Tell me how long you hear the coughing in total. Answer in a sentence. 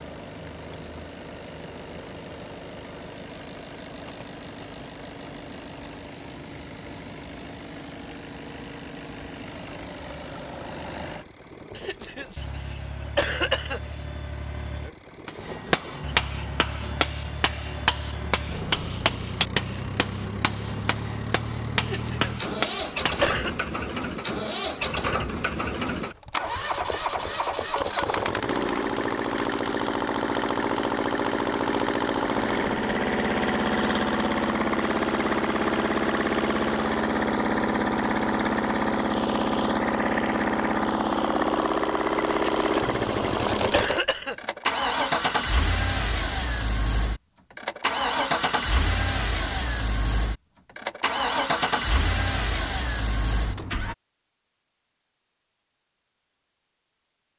The coughing can be heard for 6 seconds in total.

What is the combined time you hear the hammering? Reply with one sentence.
You can hear the hammering for 8 seconds altogether.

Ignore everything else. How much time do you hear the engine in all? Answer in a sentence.
The engine can be heard for 54 seconds in total.